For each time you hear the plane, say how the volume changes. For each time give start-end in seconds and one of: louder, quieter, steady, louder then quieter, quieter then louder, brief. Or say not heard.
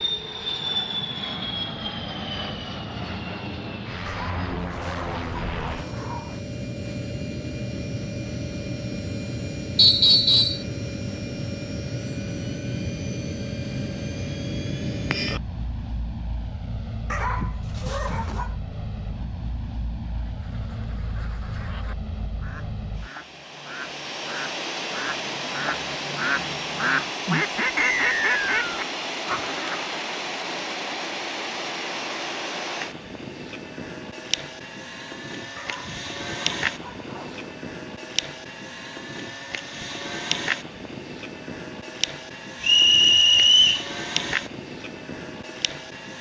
0.0-46.1 steady.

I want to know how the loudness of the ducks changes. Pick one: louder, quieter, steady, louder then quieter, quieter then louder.
louder.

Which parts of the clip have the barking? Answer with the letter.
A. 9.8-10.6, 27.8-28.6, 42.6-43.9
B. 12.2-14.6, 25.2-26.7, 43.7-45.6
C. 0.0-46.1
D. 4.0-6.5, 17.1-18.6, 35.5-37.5
D.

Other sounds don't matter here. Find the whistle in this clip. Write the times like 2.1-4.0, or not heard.
9.8-10.6, 27.8-28.6, 42.6-43.9.